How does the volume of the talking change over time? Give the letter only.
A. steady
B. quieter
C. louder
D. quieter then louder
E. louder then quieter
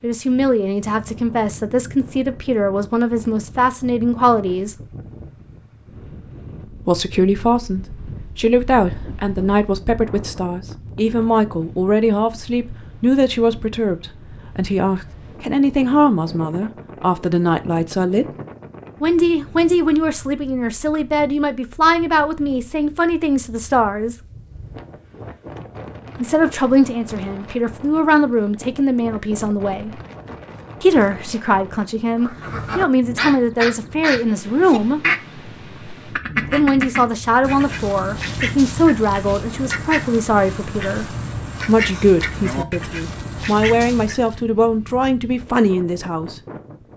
A.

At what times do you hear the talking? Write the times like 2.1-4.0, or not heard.
0.0-4.8, 6.8-18.3, 19.0-24.1, 26.1-30.0, 30.8-35.0, 36.5-46.4.